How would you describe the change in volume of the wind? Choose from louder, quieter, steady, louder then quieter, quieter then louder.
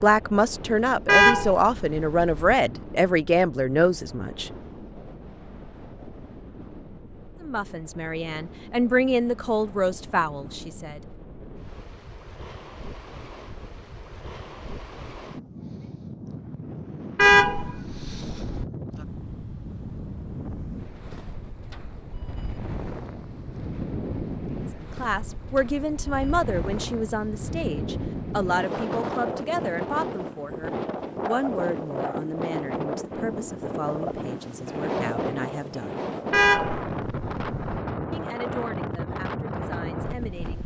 louder.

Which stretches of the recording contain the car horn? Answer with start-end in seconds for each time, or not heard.
1.1-2.5, 17.1-18.6, 36.3-37.8.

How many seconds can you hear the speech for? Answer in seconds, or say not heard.
22 s.